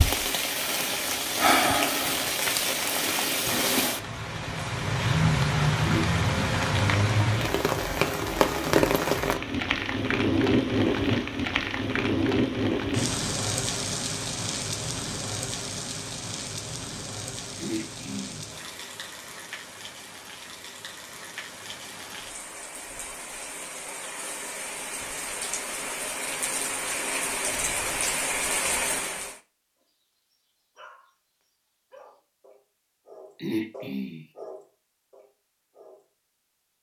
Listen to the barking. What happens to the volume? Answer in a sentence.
The loudness of the barking goes up, then down.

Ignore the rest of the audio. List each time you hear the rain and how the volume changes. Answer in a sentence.
You can hear the rain from 0.0 to 29.4 s, getting quieter then louder.